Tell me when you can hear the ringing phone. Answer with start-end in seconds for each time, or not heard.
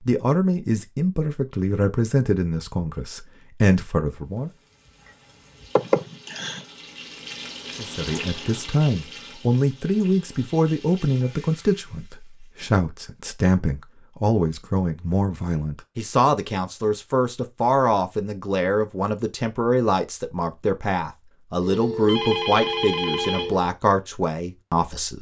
21.6-23.6.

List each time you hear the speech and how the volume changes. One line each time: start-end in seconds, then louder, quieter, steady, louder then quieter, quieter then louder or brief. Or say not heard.
0.0-4.5 quieter then louder
7.8-25.1 steady.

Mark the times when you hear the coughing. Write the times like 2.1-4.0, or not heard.
5.8-6.7.